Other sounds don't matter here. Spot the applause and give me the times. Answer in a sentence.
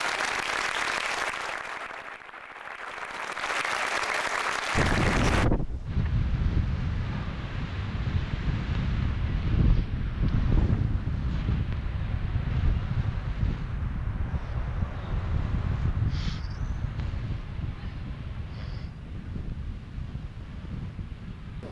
The applause can be heard from 0.0 to 5.5 s.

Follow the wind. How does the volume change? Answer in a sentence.
The volume of the wind goes down.